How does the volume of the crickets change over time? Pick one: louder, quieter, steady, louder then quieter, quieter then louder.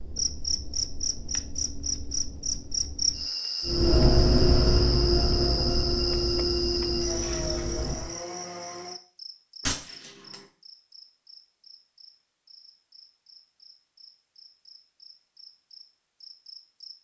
quieter.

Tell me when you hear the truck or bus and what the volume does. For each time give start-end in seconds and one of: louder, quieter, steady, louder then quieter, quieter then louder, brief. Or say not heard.
3.6-8.2 quieter.